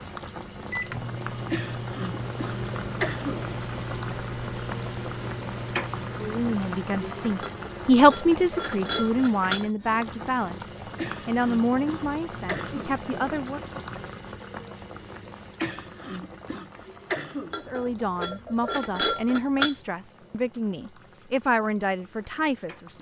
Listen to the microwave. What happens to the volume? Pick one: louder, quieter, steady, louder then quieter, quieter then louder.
steady.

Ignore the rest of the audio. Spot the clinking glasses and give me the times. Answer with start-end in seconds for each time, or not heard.
7.4-9.7, 17.5-19.8.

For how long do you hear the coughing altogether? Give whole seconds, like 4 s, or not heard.
6 s.